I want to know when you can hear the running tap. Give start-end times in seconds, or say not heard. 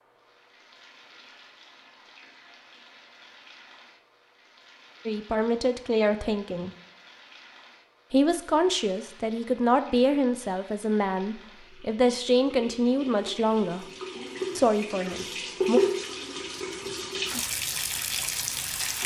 0.0-19.0.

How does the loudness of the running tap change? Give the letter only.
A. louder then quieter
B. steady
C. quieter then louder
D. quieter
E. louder
E.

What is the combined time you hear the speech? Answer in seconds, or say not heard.
9 s.